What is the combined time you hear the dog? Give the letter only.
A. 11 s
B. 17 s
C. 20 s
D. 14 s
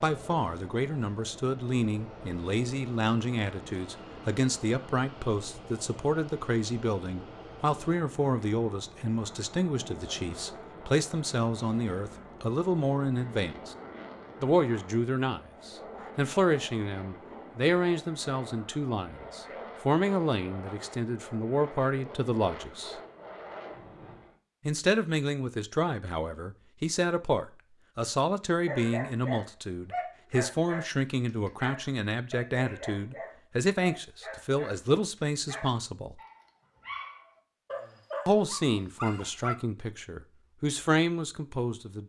A.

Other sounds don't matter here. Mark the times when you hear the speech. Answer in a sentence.
The speech can be heard from 0.0 to 13.8 s, from 14.4 to 22.9 s, from 24.6 to 36.2 s and from 38.2 to 42.0 s.